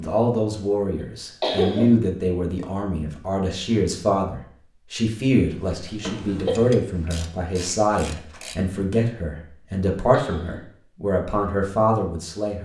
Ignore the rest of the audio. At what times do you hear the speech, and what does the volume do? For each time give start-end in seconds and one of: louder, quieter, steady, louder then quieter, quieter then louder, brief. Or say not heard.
0.0-12.6 steady.